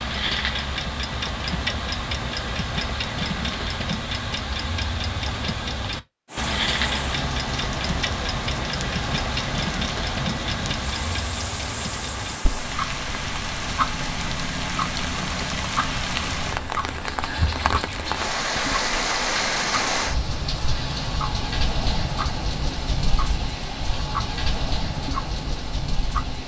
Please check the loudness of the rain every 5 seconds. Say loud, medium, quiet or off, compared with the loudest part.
off, medium, medium, loud, loud, medium.